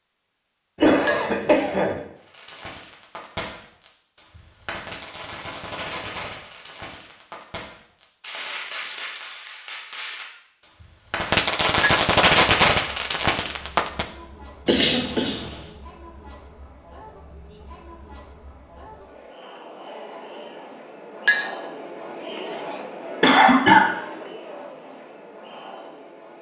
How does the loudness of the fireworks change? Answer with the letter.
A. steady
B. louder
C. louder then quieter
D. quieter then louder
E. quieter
B.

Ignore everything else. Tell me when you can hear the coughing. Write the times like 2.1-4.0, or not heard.
0.8-2.0, 14.7-15.6, 23.2-23.9.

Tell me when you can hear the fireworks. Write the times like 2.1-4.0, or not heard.
2.2-14.1.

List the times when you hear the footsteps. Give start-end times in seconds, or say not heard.
not heard.